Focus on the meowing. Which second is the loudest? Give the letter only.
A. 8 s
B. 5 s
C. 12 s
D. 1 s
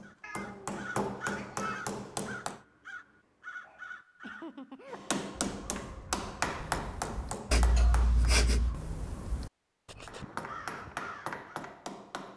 A.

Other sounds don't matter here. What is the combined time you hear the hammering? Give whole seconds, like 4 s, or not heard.
8 s.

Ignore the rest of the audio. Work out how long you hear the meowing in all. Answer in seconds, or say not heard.
3 s.